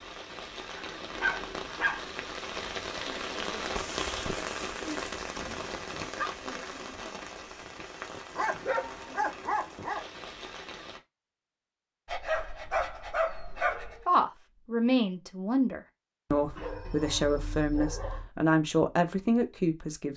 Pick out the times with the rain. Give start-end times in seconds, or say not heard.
0.0-11.0.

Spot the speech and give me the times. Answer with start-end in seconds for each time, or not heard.
14.1-20.1.